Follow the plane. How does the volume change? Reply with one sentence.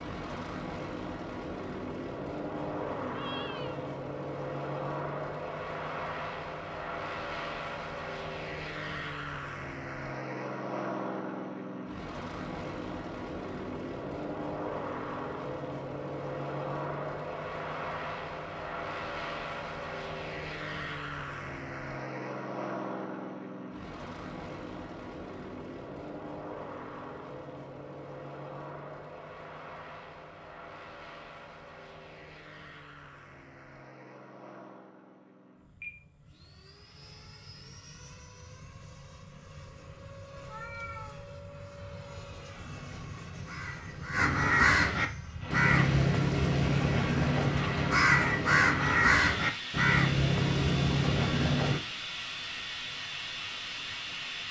The volume of the plane goes down, then up.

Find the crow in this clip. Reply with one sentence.
You can hear the crow from 42.5 to 51.8 s.